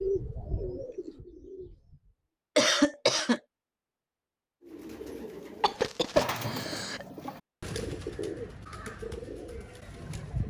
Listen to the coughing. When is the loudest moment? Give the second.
3 s.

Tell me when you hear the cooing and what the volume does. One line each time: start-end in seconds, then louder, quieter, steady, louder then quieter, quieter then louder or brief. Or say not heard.
0.0-2.1 brief
4.7-10.4 louder then quieter.